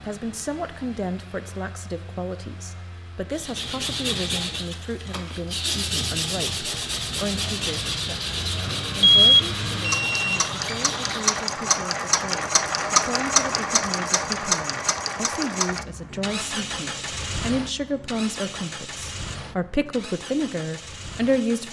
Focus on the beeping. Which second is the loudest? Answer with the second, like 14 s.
9 s.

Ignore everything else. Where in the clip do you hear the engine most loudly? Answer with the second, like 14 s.
13 s.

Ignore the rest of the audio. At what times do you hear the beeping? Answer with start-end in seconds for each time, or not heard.
9.0-10.9.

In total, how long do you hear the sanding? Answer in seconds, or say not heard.
8 s.